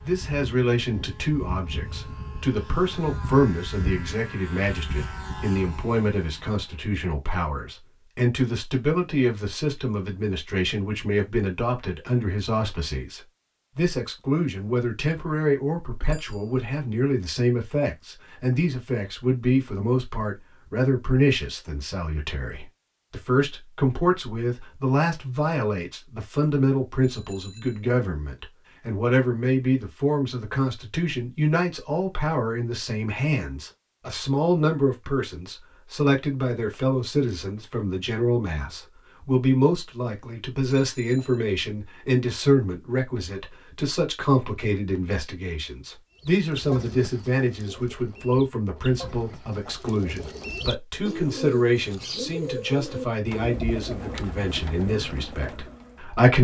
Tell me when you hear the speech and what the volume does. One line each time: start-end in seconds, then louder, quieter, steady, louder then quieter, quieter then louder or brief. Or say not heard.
0.1-56.3 steady.